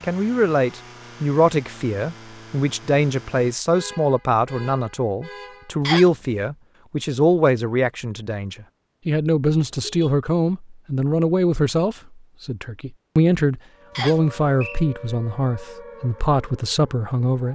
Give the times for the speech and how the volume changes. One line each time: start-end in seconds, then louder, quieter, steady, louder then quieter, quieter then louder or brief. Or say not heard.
0.0-17.5 steady.